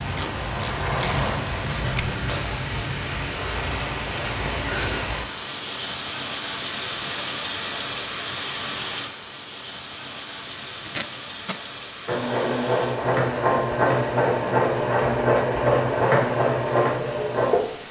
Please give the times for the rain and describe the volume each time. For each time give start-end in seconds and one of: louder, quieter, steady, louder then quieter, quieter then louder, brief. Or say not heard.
0.0-17.8 quieter.